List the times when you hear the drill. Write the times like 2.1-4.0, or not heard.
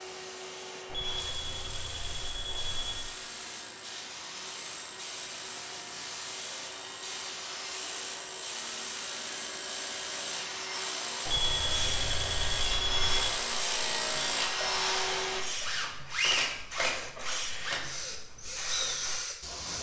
0.0-19.7.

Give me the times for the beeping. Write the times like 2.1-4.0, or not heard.
0.8-3.1, 11.2-13.3.